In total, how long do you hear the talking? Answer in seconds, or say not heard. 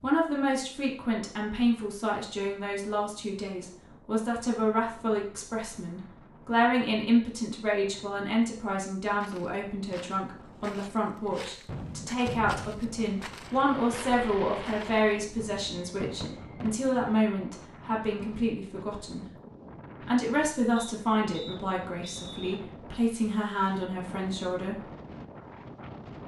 24 s.